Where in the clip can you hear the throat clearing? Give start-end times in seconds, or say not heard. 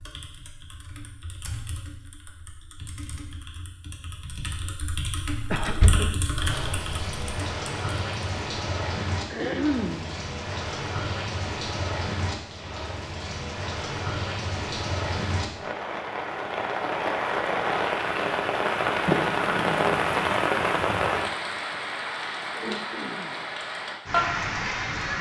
5.5-6.2, 9.3-10.2, 22.6-23.4.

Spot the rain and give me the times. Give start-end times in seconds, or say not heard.
6.4-25.1.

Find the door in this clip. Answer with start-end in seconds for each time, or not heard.
5.7-6.2, 19.1-20.4.